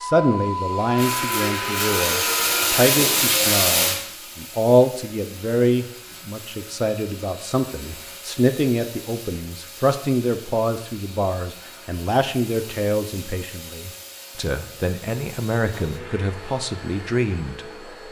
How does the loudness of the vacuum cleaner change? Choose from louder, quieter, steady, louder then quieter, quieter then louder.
quieter.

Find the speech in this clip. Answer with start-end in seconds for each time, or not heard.
0.0-17.6.